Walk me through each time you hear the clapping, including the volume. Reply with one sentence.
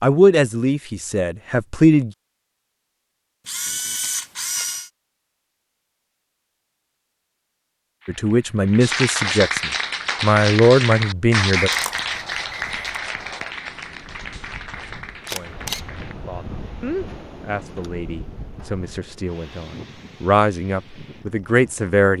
The clapping can be heard from 8.0 to 16.1 s, getting quieter.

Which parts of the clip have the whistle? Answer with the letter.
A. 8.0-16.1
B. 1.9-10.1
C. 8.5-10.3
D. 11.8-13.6
D.